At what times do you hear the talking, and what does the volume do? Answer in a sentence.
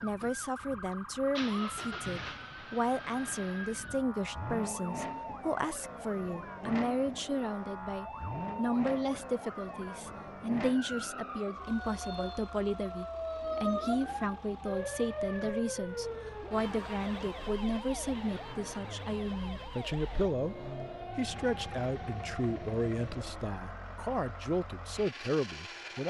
You can hear the talking from 0.0 to 26.0 s, at a steady volume.